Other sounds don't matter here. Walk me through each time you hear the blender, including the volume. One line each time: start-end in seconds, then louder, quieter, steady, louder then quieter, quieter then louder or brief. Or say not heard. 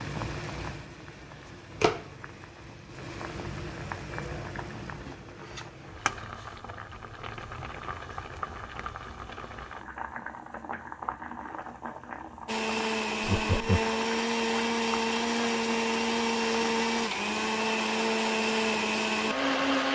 12.4-19.9 steady.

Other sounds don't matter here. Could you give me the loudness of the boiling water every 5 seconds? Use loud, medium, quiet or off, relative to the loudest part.
loud, loud, loud, medium.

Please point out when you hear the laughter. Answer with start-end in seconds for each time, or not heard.
13.2-13.9.